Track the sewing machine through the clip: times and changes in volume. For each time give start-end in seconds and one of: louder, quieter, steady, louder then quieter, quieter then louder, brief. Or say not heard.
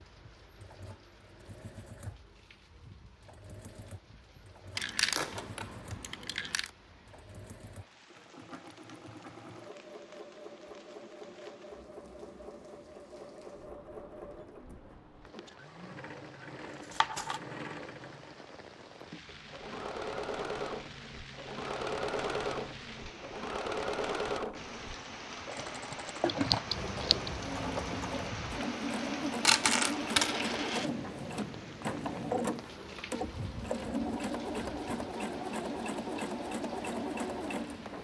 0.0-38.0 louder.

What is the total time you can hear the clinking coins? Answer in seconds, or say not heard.
4 s.